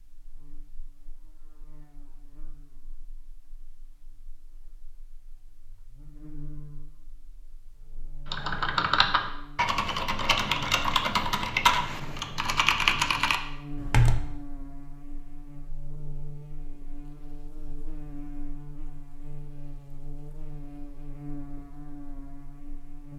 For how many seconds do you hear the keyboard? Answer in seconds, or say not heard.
6 s.